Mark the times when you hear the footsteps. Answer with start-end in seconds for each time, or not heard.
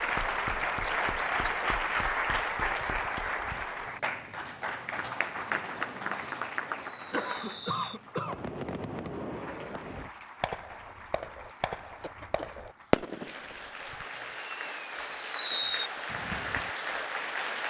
not heard.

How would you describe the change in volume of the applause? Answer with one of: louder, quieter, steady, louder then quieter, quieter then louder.
quieter then louder.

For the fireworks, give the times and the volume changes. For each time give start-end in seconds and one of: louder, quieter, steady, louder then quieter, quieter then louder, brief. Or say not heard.
6.1-13.6 louder
14.3-16.7 brief.